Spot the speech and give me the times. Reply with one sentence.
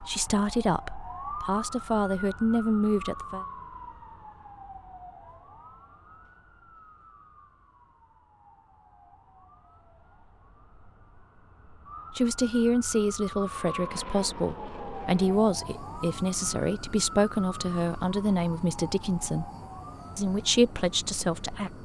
The speech can be heard from 0.0 to 3.5 s, from 12.1 to 19.5 s and from 20.1 to 21.7 s.